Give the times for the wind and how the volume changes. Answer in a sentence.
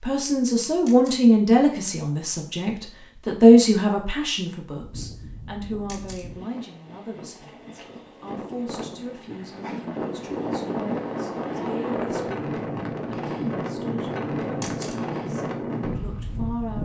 The wind can be heard from 4.7 to 16.7 s, getting louder.